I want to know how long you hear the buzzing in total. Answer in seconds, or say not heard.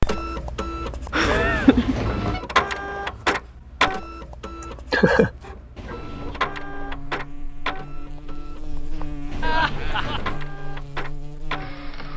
6 s.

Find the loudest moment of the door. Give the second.
2 s.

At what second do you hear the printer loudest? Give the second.
3 s.